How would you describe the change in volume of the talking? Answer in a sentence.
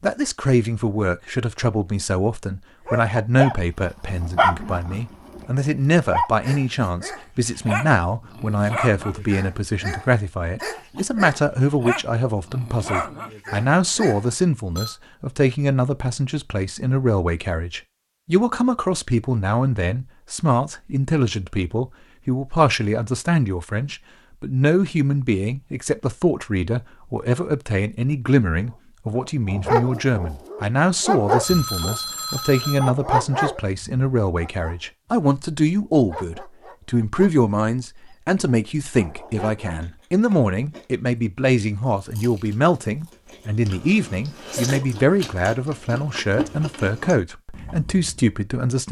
The loudness of the talking stays about the same.